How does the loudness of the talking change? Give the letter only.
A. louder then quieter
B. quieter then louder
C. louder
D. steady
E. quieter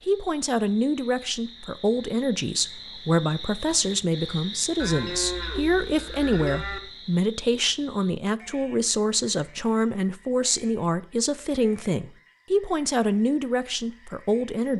D.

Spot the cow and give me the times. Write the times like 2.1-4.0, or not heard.
4.8-6.8.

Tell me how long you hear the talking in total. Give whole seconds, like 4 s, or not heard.
15 s.